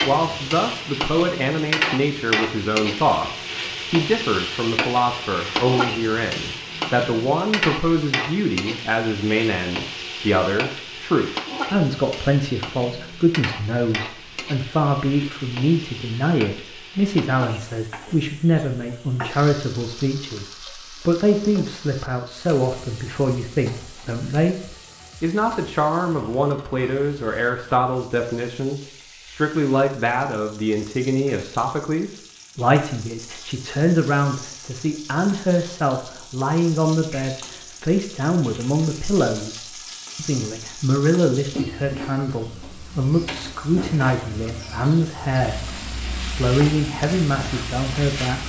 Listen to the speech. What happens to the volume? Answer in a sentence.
The volume of the speech stays about the same.